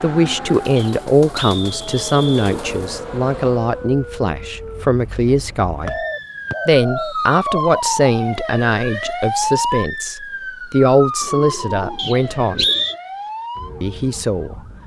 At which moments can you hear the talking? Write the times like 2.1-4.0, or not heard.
0.0-6.0, 6.7-12.7, 13.8-14.6.